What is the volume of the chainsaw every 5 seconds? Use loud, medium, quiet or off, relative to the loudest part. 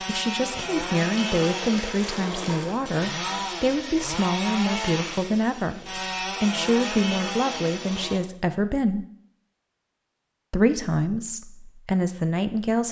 loud, loud, off.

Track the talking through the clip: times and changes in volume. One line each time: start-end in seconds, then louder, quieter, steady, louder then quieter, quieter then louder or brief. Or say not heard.
0.1-9.1 steady
10.5-12.8 brief.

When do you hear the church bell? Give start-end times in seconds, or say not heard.
not heard.